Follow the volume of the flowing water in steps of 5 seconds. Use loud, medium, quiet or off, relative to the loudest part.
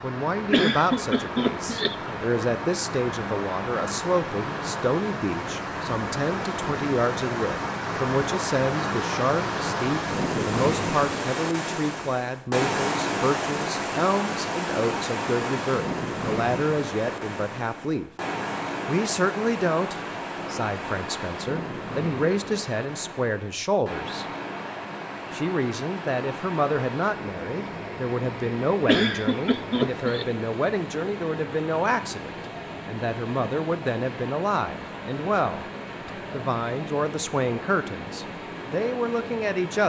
medium, loud, loud, loud, medium, medium, medium, medium.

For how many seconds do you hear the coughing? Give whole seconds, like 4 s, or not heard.
3 s.